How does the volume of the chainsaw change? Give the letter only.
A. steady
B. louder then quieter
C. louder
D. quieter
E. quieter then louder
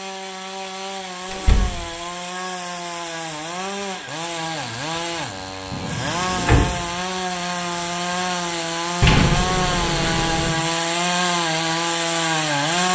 C.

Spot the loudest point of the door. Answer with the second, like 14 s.
9 s.